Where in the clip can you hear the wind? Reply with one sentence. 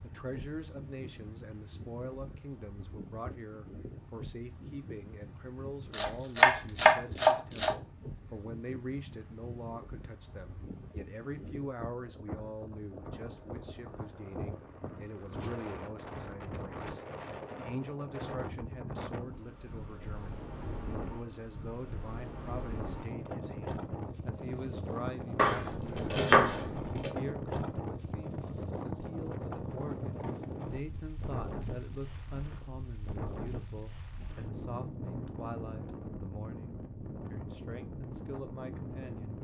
You can hear the wind from 0.0 to 39.3 s.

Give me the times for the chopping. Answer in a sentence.
You can hear the chopping from 5.9 to 7.8 s and from 25.4 to 27.1 s.